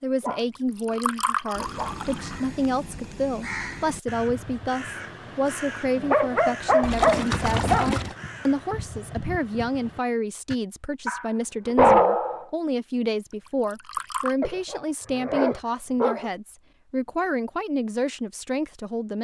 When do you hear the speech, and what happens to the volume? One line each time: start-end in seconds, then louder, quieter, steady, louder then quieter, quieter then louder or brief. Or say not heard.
0.0-19.2 steady.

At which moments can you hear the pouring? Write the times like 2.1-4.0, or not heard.
0.6-2.4, 6.8-8.2, 13.4-14.3.